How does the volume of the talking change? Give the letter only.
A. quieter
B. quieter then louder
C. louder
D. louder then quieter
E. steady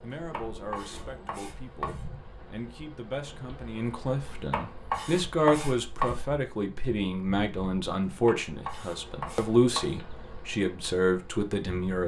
C.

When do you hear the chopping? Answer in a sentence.
The chopping can be heard from 0.1 to 2.0 s, from 4.2 to 6.2 s and from 8.1 to 9.9 s.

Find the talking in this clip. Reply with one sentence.
The talking can be heard from 0.0 to 12.0 s.